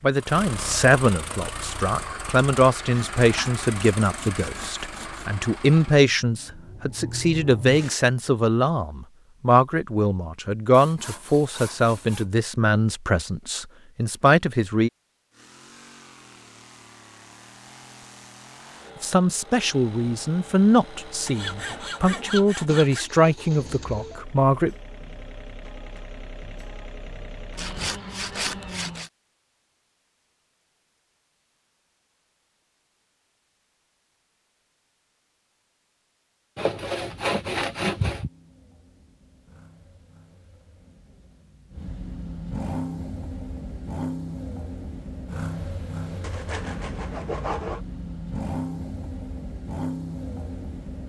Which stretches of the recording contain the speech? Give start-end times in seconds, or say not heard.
0.0-14.9, 19.0-24.7.